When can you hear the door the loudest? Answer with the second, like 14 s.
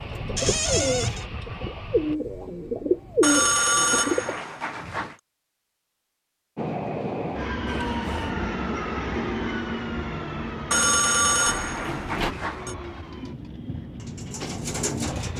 1 s.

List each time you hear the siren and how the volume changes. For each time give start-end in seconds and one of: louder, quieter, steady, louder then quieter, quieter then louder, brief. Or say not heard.
not heard.